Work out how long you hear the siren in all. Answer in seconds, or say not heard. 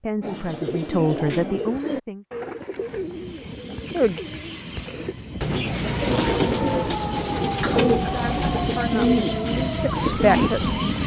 5 s.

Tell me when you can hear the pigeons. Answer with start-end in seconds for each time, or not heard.
0.2-10.5.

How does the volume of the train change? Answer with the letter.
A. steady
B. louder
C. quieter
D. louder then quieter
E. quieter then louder
B.